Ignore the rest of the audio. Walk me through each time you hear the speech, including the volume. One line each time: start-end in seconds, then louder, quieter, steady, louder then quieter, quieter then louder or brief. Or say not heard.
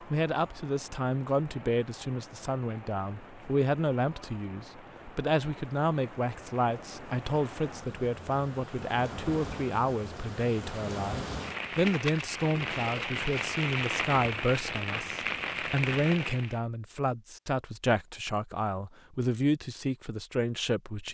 0.0-21.0 steady.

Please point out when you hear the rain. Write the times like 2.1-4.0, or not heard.
0.0-16.6.